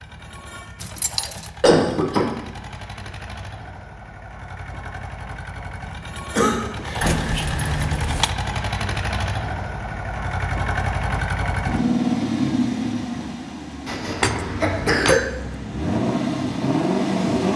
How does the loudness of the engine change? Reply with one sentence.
The volume of the engine goes up.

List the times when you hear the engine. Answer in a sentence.
The engine can be heard from 0.0 to 17.5 s.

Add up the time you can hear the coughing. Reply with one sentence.
The coughing can be heard for 3 seconds in total.